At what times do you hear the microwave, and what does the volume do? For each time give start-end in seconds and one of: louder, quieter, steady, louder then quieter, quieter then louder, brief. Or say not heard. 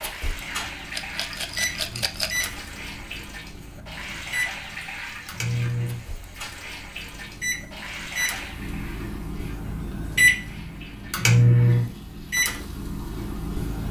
0.0-13.8 louder.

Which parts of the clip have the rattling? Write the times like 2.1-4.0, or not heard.
0.9-2.5.